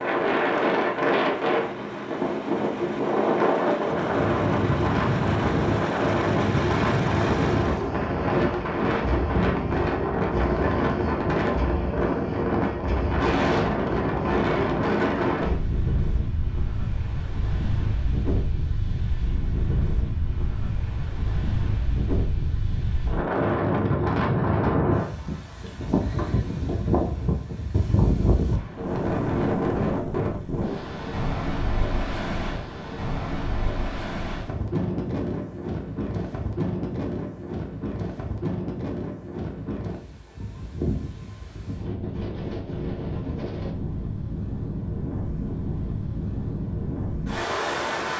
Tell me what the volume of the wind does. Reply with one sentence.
The volume of the wind goes down.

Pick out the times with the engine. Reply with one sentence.
The engine can be heard from 0.0 to 7.9 s.